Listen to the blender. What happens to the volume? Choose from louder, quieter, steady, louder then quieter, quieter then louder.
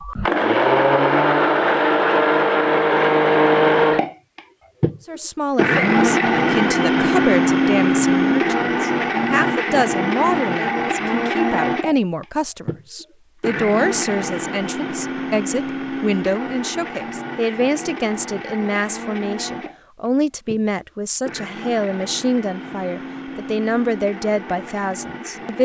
quieter.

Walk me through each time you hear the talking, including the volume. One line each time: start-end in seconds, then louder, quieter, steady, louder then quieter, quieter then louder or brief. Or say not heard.
5.0-25.5 steady.